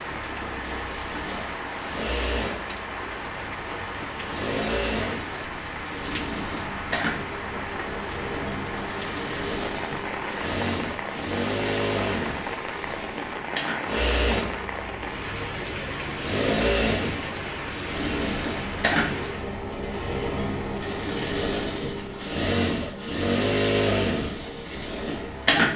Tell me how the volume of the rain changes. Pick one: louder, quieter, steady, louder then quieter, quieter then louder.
steady.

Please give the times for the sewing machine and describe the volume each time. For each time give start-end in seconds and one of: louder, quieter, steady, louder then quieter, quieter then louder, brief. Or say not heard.
0.0-25.7 louder.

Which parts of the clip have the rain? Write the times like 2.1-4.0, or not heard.
0.0-19.5.